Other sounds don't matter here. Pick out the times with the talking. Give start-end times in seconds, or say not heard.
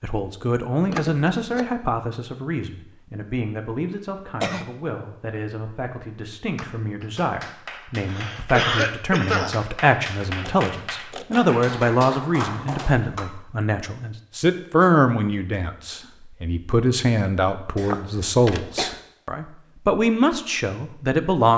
0.0-21.5.